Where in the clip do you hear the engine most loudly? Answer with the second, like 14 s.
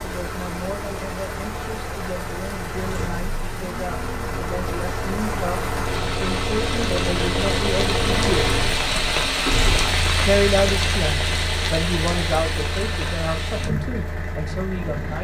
8 s.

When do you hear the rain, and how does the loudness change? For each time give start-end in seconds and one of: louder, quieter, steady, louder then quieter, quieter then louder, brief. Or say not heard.
0.0-15.1 louder then quieter.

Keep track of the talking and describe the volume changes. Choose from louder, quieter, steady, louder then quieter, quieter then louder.
louder then quieter.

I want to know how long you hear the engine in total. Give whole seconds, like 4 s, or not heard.
15 s.